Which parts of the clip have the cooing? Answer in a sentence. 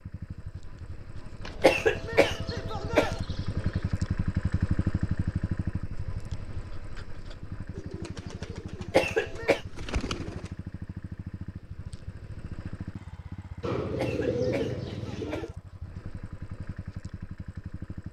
The cooing can be heard from 1.4 to 4.0 s, from 7.8 to 10.6 s and from 13.6 to 15.5 s.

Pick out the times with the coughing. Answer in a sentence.
The coughing can be heard from 1.6 to 3.2 s, from 8.9 to 9.6 s and from 13.9 to 15.6 s.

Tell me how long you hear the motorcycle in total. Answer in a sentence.
The motorcycle can be heard for 18 seconds in total.